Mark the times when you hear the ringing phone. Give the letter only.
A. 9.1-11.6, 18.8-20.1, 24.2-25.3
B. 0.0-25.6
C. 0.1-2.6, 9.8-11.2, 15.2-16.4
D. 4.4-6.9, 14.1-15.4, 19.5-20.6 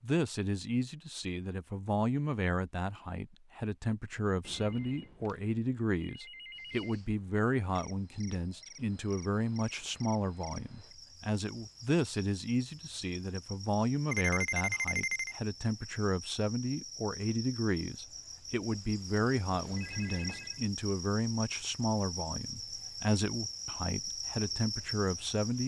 D.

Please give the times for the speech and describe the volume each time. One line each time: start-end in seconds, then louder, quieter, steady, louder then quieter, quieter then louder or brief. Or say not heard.
0.0-25.6 steady.